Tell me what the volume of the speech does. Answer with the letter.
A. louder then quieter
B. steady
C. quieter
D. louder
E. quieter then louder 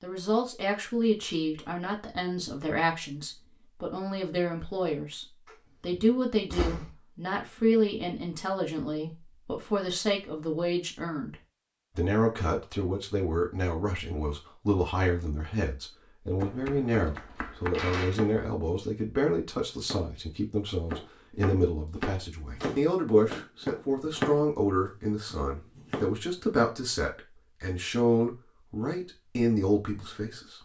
B.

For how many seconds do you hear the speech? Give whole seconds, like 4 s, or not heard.
30 s.